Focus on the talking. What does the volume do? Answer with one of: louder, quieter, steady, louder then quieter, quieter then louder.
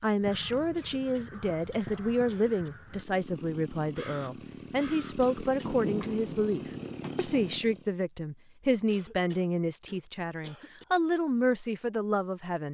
steady.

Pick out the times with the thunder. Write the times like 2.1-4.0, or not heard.
5.6-7.6.